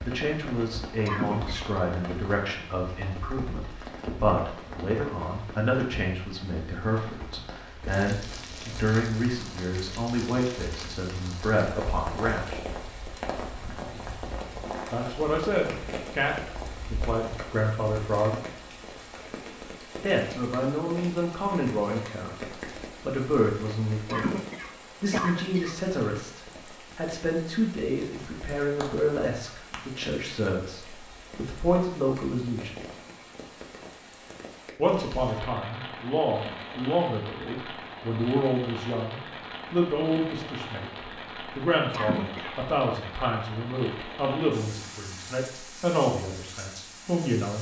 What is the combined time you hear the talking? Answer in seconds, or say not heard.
41 s.